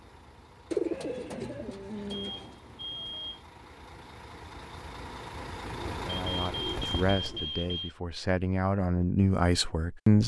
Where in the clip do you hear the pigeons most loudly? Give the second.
1 s.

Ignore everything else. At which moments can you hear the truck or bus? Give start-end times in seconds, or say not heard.
0.0-7.3.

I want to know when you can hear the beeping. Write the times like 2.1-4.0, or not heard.
2.1-3.5, 6.2-8.0.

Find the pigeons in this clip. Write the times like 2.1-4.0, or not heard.
0.7-2.5, 5.7-7.5.